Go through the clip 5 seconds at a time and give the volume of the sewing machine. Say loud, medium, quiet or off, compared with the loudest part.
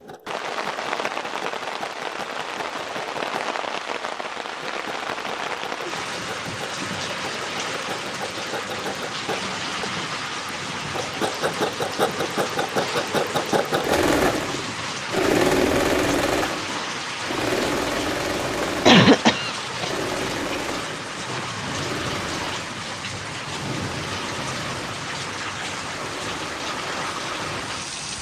quiet, quiet, loud, loud, medium, quiet.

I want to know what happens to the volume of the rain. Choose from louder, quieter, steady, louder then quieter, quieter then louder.
steady.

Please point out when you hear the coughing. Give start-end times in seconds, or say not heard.
18.6-19.9.